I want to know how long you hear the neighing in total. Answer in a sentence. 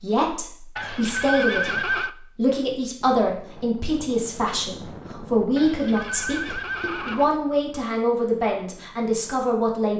The neighing can be heard for 3 seconds in total.